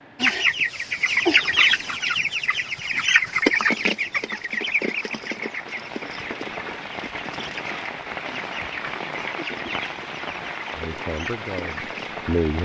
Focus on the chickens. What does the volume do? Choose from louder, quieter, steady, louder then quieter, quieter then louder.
quieter.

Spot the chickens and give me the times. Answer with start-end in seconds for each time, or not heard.
0.2-12.2.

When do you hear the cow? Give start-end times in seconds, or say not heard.
not heard.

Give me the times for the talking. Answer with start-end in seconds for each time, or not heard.
10.8-12.6.